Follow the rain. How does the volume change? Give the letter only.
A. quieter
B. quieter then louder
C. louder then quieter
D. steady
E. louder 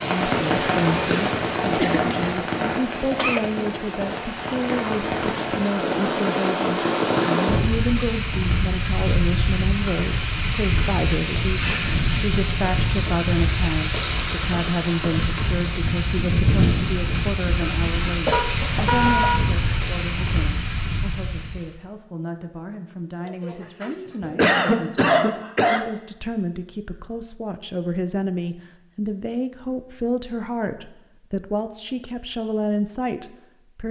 D.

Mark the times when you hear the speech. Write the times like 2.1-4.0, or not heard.
0.0-33.8.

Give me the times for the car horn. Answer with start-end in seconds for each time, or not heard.
18.3-19.4.